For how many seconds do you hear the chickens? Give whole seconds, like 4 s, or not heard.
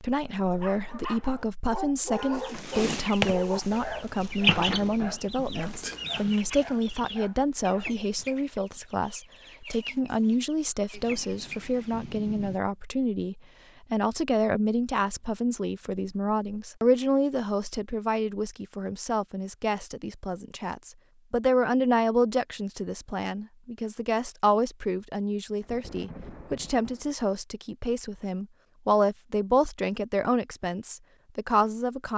10 s.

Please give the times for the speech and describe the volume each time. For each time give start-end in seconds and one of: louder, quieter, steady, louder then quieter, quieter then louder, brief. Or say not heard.
0.0-32.1 steady.